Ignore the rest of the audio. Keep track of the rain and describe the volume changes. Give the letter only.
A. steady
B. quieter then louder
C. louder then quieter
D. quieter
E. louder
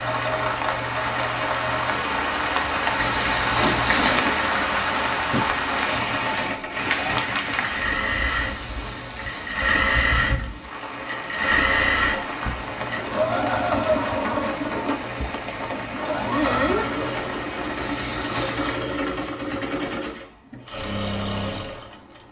D.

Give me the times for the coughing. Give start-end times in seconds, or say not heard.
not heard.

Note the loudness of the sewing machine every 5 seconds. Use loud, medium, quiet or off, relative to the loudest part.
medium, loud, loud, loud, medium.